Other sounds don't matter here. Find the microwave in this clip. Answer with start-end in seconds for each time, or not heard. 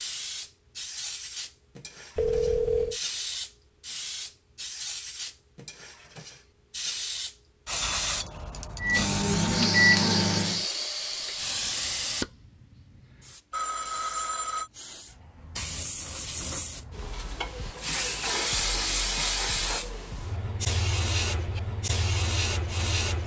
8.8-10.7.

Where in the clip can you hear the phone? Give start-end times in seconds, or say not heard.
2.1-3.0, 13.5-14.7.